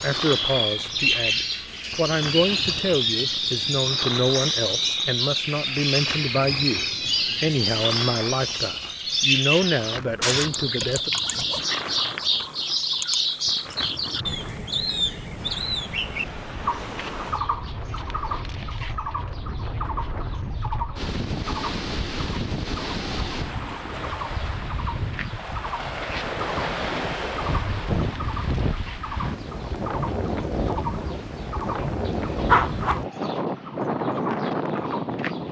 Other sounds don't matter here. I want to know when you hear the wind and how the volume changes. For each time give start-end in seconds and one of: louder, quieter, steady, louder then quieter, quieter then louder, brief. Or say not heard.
0.0-35.4 louder.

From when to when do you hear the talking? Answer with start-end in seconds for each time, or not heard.
0.0-11.1.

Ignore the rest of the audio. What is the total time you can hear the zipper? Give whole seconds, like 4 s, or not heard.
2 s.